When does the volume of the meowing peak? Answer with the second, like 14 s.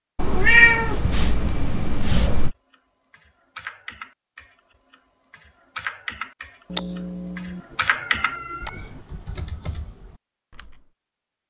1 s.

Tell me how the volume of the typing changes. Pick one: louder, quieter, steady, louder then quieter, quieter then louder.
louder then quieter.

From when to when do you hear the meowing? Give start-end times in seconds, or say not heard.
0.1-2.5, 6.7-8.8.